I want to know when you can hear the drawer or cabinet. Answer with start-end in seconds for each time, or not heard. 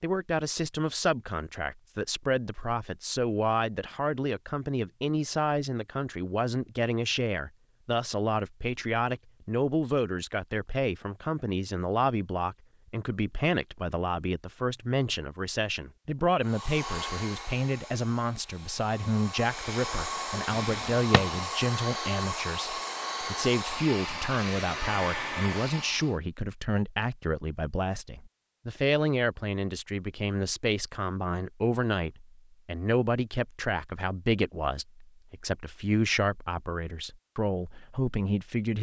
20.5-21.4.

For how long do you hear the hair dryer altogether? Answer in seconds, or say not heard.
10 s.